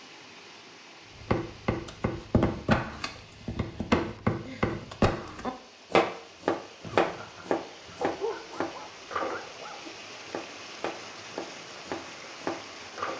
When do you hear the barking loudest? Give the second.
8 s.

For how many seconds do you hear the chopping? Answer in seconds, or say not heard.
12 s.